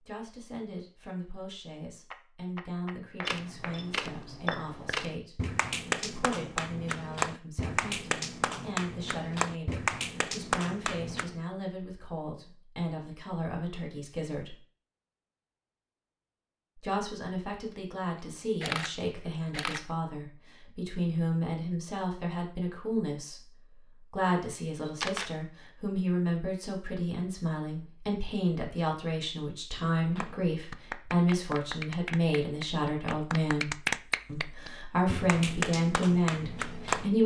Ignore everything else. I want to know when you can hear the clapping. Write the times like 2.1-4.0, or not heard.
2.1-11.4, 29.9-37.2.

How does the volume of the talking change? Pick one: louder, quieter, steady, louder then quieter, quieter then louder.
louder.